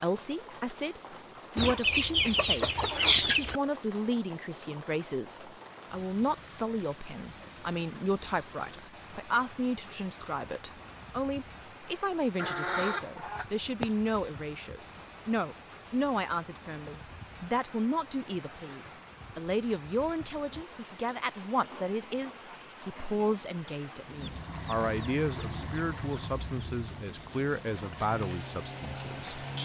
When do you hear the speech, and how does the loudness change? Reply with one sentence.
The speech can be heard from 0.0 to 29.4 s, at a steady volume.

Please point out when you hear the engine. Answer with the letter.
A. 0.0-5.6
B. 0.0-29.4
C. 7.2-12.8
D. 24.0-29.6
D.